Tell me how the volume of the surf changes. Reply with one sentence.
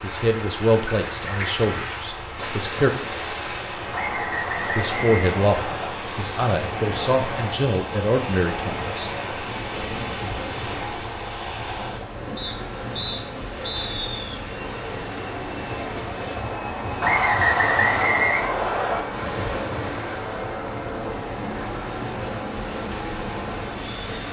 The volume of the surf stays about the same.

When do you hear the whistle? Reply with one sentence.
You can hear the whistle from 3.9 to 6.0 s, from 12.3 to 14.1 s and from 17.0 to 19.1 s.